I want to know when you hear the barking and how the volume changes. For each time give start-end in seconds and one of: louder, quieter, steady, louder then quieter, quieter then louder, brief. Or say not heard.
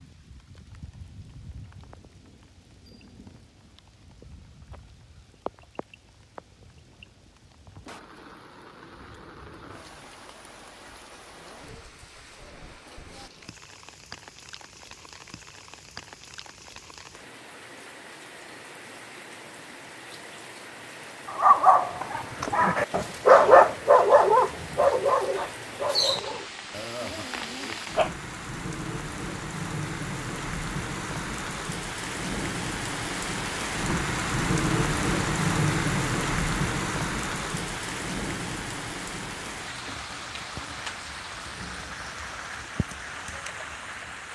21.2-28.1 louder then quieter.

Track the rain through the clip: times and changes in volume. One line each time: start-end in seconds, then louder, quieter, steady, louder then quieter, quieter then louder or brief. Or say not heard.
0.0-44.3 louder.